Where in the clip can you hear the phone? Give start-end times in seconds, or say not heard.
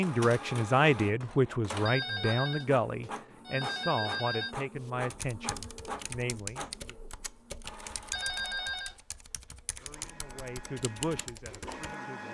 1.9-4.5, 8.1-8.9.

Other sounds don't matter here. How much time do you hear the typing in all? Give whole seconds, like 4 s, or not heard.
7 s.